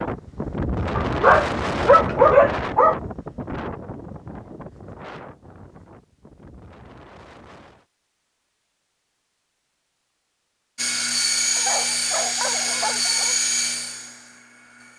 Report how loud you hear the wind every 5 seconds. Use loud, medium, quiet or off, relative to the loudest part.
loud, quiet, off.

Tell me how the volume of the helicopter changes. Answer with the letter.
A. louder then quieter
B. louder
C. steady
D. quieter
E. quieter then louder
D.